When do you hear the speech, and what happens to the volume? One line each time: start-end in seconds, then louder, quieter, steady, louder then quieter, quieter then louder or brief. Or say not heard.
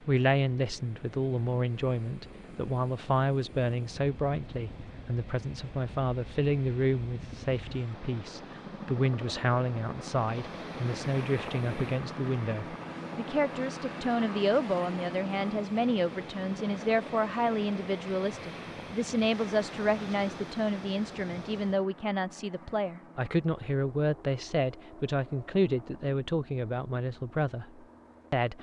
0.0-28.5 steady.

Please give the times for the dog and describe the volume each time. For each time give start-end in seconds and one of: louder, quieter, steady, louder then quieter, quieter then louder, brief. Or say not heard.
not heard.